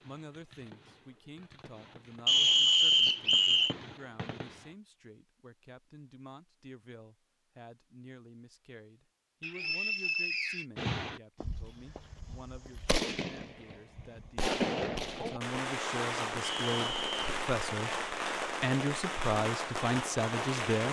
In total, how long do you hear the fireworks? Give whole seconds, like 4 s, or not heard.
15 s.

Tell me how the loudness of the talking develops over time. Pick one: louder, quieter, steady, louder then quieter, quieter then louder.
louder.